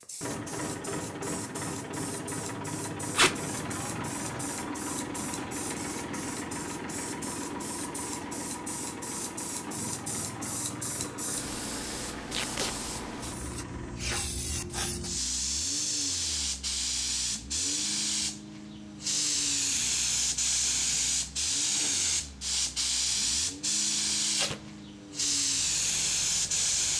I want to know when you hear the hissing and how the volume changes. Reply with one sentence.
The hissing can be heard from 0.0 to 26.9 s, getting louder.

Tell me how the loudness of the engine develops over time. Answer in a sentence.
The volume of the engine goes down.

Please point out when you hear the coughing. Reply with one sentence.
The coughing can't be heard in this clip.